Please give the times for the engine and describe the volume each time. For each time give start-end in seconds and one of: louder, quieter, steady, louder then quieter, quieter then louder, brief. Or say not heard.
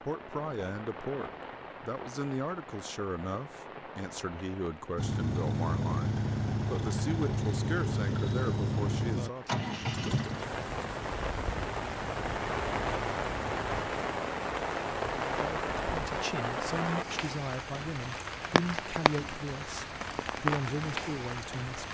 5.0-13.8 quieter.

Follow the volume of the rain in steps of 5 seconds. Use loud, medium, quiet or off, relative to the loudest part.
medium, quiet, loud, loud, loud.